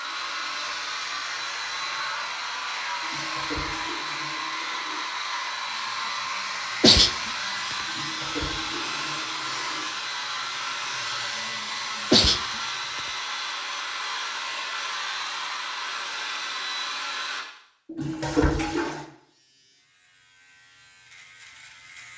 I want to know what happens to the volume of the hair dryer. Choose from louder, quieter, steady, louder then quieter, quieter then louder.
steady.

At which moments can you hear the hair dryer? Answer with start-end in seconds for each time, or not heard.
0.0-17.4.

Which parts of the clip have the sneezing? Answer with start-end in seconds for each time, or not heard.
6.8-7.8, 12.1-13.0.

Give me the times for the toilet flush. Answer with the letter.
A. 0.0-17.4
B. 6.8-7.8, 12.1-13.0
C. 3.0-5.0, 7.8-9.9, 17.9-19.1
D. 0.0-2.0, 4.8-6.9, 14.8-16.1
C.